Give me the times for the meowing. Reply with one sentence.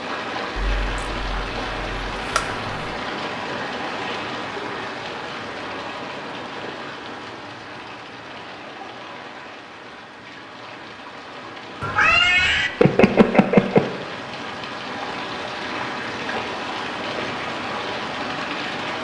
You can hear the meowing from 0.6 to 2.9 s and from 11.8 to 13.8 s.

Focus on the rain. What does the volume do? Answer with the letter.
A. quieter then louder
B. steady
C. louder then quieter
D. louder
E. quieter
A.